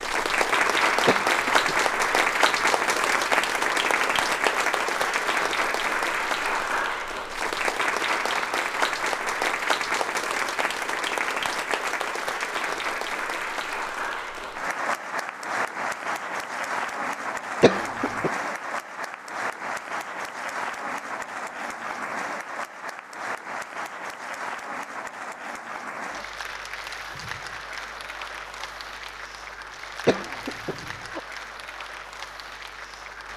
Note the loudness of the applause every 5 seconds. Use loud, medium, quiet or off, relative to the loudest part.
loud, loud, medium, medium, medium, quiet, quiet.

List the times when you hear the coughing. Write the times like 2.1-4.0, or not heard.
1.1-1.8, 17.6-18.3, 30.1-31.2.